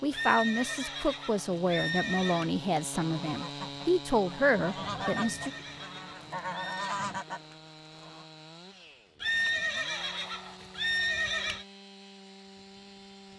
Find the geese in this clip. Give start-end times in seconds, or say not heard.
3.0-8.2.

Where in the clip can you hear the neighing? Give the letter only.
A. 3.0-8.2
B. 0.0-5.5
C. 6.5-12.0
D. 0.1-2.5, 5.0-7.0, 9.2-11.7
D.